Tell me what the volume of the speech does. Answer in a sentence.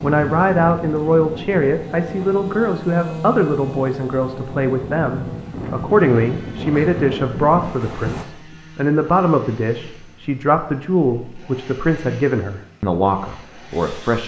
The loudness of the speech stays about the same.